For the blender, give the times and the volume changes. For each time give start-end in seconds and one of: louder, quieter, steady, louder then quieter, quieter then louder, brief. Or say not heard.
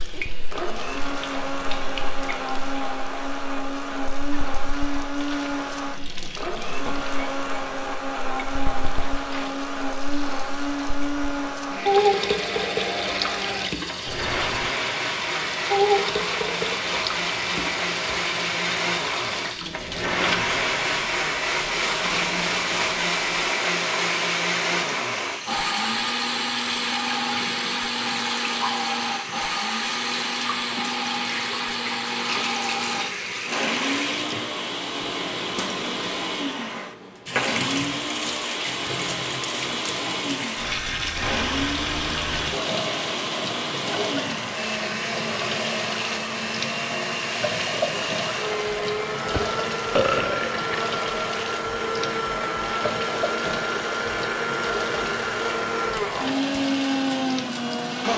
0.0-58.1 steady.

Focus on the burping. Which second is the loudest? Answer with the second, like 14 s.
50 s.